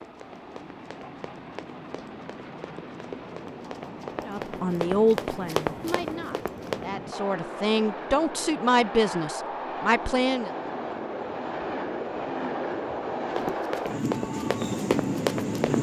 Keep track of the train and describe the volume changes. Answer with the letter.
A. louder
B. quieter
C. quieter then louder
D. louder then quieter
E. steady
A.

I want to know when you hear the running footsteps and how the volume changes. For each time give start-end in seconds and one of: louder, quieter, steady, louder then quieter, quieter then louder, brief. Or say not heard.
0.0-6.8 louder
13.3-15.7 brief.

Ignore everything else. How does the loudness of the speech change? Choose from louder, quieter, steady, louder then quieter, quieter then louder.
quieter then louder.